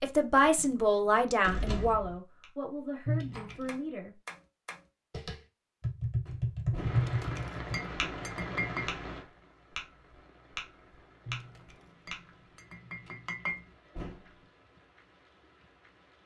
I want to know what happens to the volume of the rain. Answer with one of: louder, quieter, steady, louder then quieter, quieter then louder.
quieter.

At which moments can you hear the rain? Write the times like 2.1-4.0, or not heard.
6.8-16.2.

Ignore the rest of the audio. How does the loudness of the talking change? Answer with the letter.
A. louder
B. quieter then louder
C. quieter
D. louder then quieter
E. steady
C.